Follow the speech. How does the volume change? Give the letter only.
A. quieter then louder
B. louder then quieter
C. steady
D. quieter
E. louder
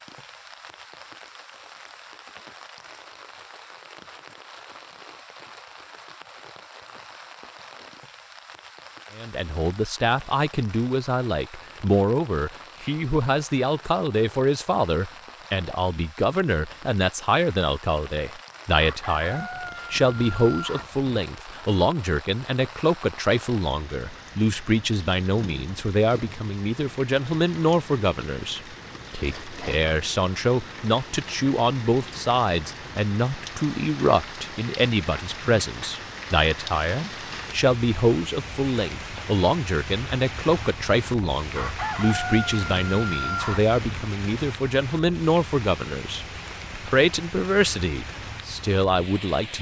C.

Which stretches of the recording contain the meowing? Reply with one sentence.
The meowing can't be heard in this clip.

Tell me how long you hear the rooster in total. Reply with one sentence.
The rooster can be heard for 5 seconds in total.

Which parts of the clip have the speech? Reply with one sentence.
You can hear the speech from 9.2 to 49.5 s.